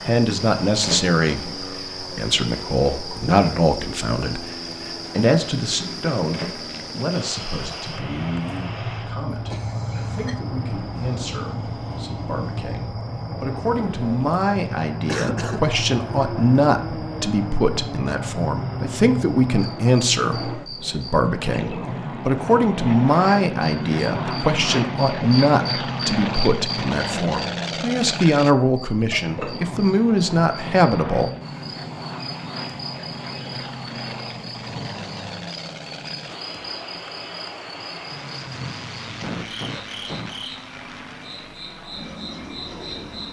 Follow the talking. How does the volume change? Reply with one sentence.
The volume of the talking goes down, then up.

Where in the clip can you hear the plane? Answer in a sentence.
The plane can be heard from 0.0 to 43.2 s.